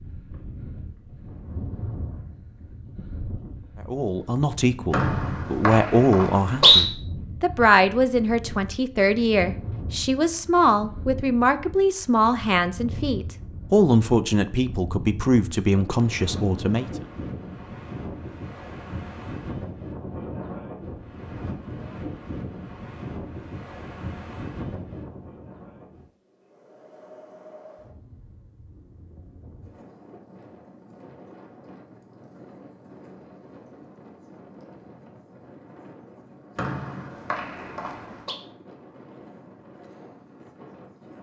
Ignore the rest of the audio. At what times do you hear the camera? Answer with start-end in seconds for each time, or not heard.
not heard.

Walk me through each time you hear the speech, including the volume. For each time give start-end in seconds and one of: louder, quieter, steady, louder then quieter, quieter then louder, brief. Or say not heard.
3.9-16.9 steady.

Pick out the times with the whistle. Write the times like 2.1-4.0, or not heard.
4.9-6.8, 36.5-38.4.